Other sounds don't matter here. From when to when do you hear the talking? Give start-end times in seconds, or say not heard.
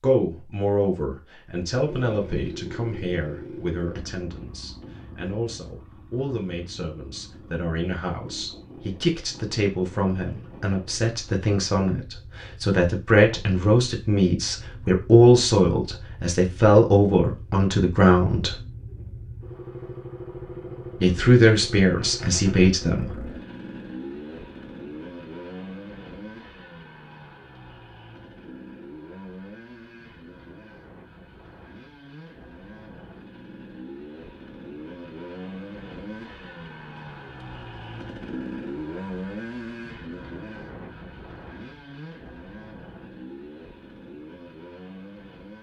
0.0-18.6, 21.0-23.1.